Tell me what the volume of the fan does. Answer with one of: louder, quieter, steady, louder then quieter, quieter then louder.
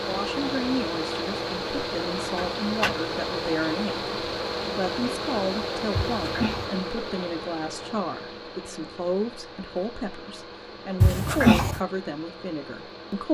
quieter.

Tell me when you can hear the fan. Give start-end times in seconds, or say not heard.
0.0-13.3.